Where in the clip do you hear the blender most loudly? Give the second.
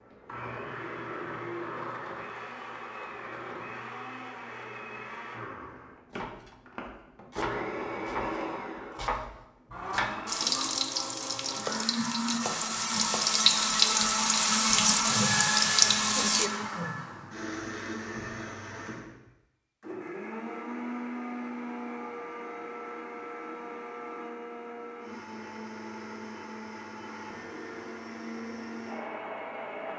15 s.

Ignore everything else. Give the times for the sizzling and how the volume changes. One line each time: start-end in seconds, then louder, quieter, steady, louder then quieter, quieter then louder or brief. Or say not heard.
10.2-16.5 louder.